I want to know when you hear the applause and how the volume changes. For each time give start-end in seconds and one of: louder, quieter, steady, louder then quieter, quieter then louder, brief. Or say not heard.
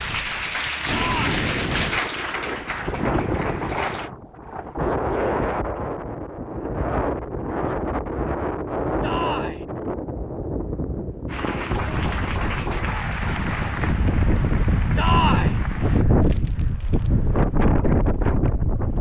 0.0-4.1 quieter
11.2-16.1 quieter.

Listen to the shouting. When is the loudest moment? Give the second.
15 s.